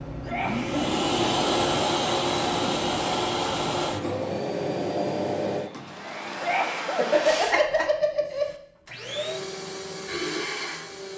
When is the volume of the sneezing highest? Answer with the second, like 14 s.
7 s.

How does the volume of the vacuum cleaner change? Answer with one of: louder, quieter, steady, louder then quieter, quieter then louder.
quieter.